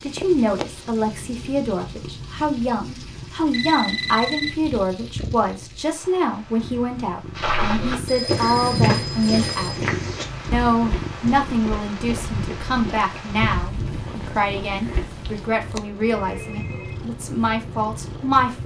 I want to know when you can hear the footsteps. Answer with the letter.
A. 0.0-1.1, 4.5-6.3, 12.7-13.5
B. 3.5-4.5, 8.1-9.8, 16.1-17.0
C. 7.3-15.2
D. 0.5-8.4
C.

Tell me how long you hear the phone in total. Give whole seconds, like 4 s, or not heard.
4 s.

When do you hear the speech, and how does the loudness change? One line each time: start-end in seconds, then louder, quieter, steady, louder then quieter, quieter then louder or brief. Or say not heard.
0.0-9.9 steady
10.5-18.6 steady.